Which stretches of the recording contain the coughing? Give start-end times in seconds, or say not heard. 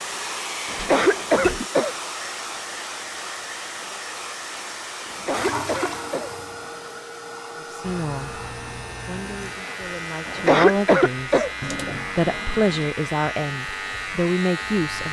0.7-1.9, 5.0-6.3, 10.2-11.5.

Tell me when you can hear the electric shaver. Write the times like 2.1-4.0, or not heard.
7.8-15.0.